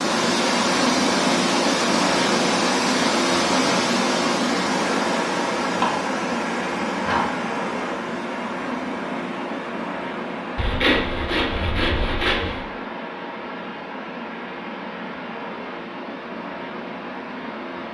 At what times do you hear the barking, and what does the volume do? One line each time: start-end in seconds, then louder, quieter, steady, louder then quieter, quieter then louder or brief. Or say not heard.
not heard.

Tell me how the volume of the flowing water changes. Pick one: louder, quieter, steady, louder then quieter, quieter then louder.
quieter.